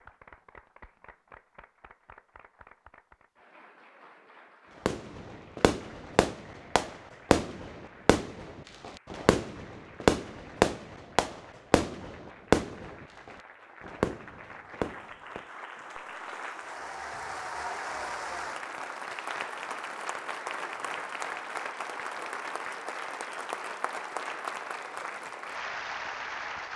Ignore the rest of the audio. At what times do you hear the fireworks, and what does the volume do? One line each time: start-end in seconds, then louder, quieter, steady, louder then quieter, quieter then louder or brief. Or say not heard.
4.8-15.4 louder then quieter.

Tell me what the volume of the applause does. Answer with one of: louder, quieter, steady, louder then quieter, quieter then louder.
louder.